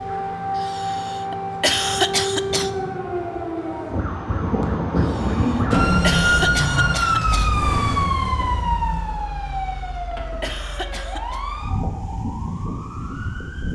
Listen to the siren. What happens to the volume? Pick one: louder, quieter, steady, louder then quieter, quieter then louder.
louder then quieter.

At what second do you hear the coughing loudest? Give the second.
2 s.